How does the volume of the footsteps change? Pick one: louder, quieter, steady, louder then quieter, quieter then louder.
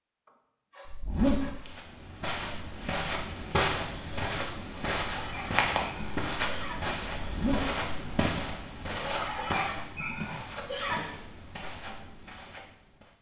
quieter.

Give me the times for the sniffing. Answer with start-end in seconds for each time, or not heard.
0.2-1.6, 4.7-6.8, 8.8-11.1.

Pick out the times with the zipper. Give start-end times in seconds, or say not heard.
0.8-1.7, 7.2-7.8.